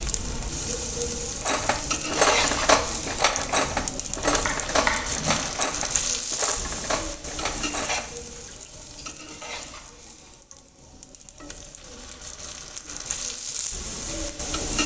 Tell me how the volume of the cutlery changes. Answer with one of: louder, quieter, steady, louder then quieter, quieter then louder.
quieter.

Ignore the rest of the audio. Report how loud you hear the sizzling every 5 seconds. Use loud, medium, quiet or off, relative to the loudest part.
loud, loud, medium.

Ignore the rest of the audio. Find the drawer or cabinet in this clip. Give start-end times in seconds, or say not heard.
4.5-5.5.